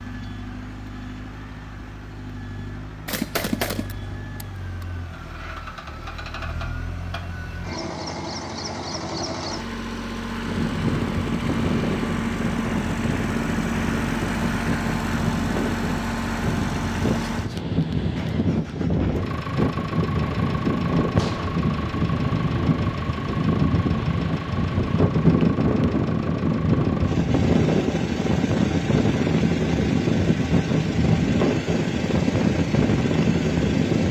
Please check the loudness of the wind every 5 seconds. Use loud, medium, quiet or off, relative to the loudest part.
off, off, medium, medium, loud, loud, loud.